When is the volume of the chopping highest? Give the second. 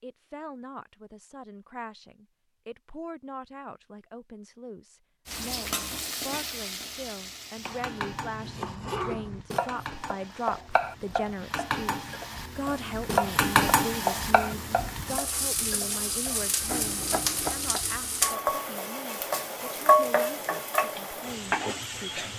13 s.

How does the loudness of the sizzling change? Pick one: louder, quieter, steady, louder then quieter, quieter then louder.
louder.